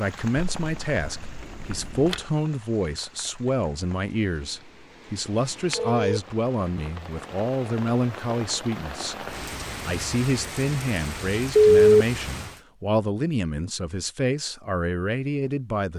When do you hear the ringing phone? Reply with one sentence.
The ringing phone can be heard from 0.3 to 2.2 s, from 5.7 to 6.2 s and from 11.6 to 12.5 s.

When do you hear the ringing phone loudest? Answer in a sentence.
The volume of the ringing phone peaks at 12 seconds.